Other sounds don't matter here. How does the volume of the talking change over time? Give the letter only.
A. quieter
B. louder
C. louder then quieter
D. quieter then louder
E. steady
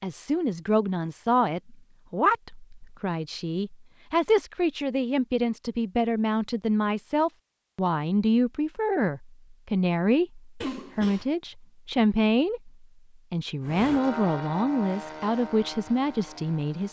E.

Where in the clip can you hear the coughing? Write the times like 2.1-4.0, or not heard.
10.6-11.2.